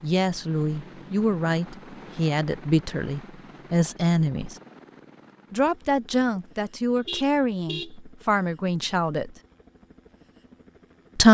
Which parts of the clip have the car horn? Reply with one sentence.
You can hear the car horn from 7.0 to 8.0 s.